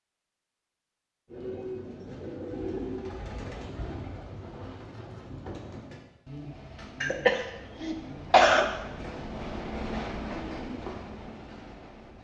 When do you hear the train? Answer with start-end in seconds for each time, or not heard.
6.5-12.1.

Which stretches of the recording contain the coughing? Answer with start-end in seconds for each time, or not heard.
7.0-8.7.